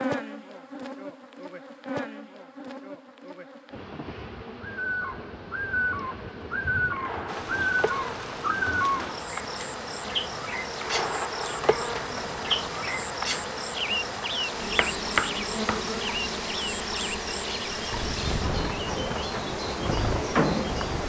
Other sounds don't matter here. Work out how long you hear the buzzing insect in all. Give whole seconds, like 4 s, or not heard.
21 s.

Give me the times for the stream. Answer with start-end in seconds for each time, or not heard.
7.2-21.0.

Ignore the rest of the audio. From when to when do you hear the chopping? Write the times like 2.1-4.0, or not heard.
14.8-15.8.